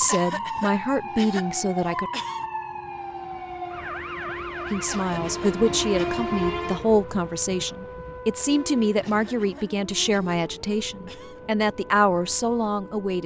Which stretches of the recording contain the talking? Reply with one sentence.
The talking can be heard from 0.0 to 2.1 s and from 4.7 to 13.2 s.